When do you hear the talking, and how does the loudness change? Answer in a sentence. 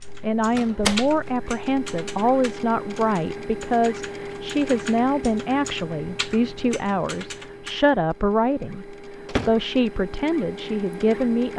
You can hear the talking from 0.2 to 11.5 s, at a steady volume.